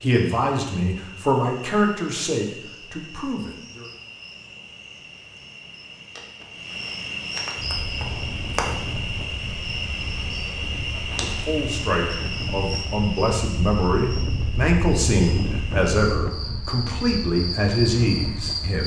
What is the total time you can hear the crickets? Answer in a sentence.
The crickets can be heard for 19 seconds in total.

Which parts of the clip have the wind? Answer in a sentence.
You can hear the wind from 7.5 to 18.8 s.